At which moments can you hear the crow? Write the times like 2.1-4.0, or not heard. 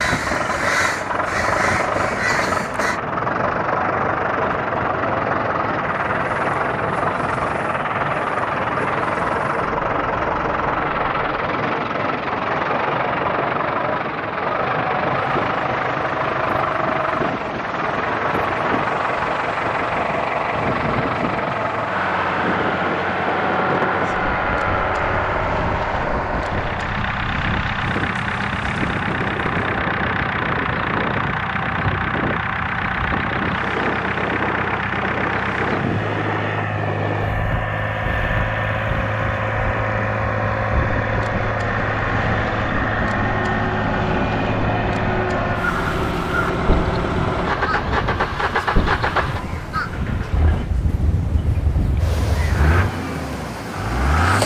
0.0-3.0, 45.6-52.6.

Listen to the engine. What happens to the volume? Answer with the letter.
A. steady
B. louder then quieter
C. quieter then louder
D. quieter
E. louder
A.